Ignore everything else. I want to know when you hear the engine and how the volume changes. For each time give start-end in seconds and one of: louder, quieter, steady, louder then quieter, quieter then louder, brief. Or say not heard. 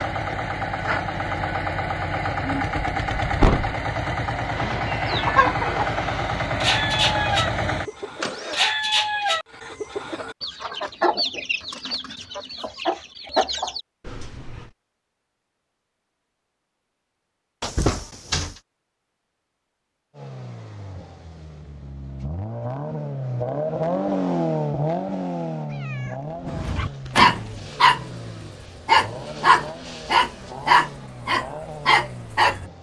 0.0-8.6 steady
20.1-32.7 louder then quieter.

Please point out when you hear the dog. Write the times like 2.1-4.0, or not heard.
26.4-32.6.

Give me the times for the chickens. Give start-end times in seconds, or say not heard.
4.5-13.8.